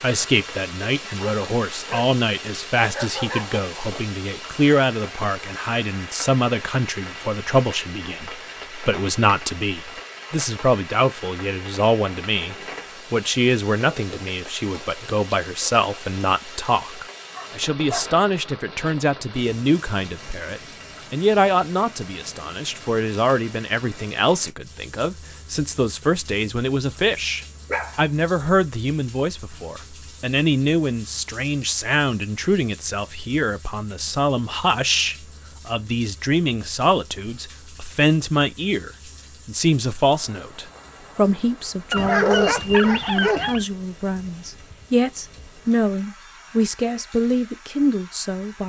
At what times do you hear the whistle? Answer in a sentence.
The whistle can't be heard in this clip.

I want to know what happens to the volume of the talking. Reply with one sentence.
The loudness of the talking stays about the same.